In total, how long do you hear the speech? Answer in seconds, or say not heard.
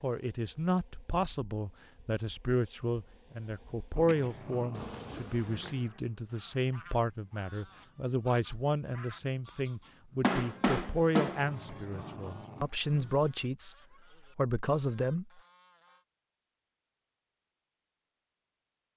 15 s.